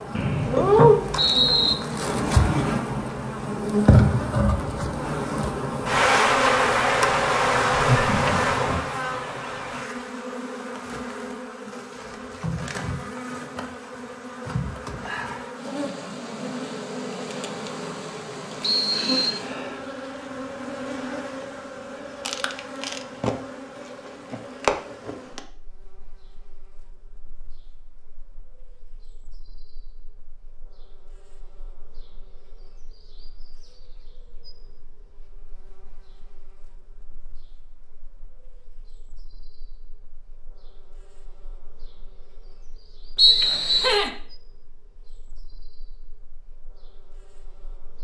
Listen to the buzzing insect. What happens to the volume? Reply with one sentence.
The volume of the buzzing insect goes down.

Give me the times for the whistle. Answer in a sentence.
The whistle can be heard from 0.1 to 1.8 s, from 18.6 to 19.4 s and from 43.1 to 44.0 s.